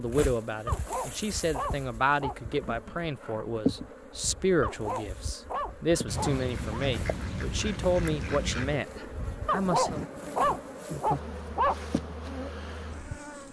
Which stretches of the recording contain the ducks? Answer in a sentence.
The ducks can be heard from 6.0 to 8.8 s.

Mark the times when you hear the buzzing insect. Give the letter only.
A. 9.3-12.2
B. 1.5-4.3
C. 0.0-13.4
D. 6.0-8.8
C.